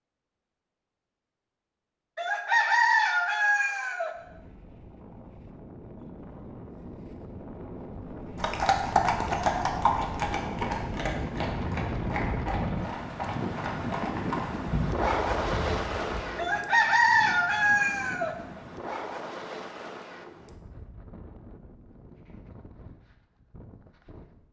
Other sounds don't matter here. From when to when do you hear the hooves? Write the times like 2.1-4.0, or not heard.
8.3-16.2.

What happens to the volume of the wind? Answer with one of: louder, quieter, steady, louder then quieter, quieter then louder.
louder then quieter.